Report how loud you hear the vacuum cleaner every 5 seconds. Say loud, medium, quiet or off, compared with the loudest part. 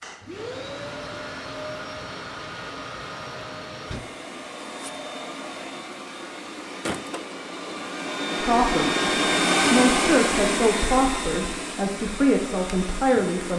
medium, loud, loud.